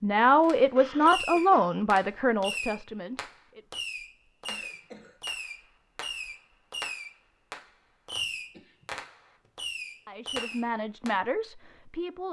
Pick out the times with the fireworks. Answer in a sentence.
You can hear the fireworks from 0.4 to 11.2 s.